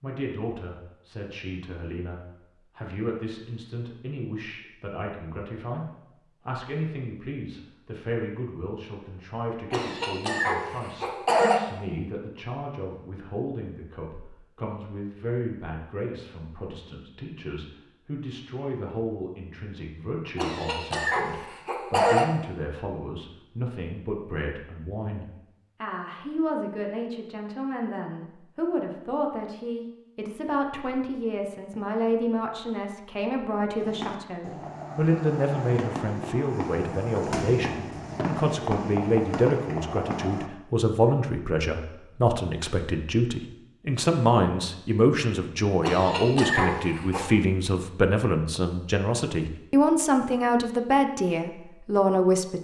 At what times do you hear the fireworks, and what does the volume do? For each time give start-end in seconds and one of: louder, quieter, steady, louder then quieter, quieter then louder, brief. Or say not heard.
33.8-40.5 louder.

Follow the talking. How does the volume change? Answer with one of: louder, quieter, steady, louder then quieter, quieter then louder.
louder.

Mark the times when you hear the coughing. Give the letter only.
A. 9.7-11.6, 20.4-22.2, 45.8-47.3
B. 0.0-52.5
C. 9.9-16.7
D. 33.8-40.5
A.